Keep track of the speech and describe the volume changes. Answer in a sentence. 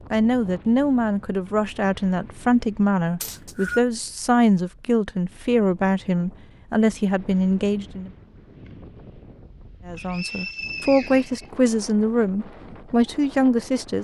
The loudness of the speech stays about the same.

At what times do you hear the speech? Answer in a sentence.
You can hear the speech from 0.1 to 8.1 s and from 9.8 to 13.9 s.